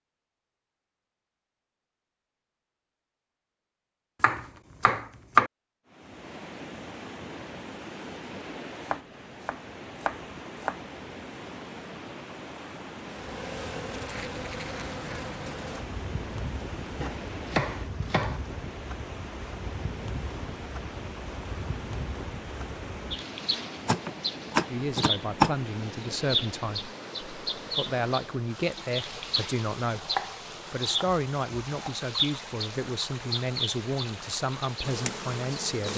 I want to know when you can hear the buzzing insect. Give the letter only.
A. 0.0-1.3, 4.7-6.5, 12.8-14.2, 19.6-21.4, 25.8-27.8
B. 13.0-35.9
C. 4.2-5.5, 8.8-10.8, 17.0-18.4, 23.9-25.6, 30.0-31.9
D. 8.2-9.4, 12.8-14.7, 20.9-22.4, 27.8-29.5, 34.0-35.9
B.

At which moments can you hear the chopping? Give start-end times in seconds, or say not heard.
4.2-5.5, 8.8-10.8, 17.0-18.4, 23.9-25.6, 30.0-31.9.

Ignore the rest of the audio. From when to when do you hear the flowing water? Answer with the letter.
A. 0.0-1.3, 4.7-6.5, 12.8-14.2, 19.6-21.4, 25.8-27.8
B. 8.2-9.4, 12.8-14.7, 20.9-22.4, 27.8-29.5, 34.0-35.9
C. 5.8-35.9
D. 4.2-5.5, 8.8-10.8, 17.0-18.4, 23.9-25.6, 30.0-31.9
C.